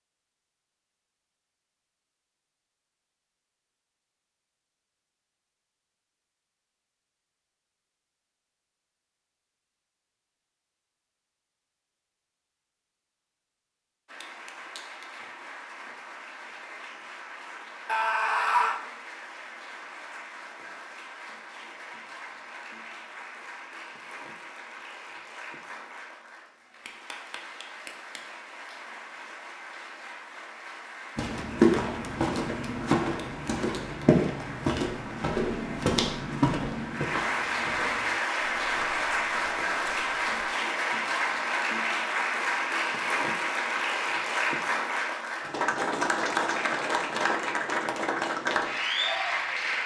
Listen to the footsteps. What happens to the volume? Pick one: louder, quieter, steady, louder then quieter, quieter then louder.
quieter.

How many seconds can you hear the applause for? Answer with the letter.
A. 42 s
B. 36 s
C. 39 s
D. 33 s
B.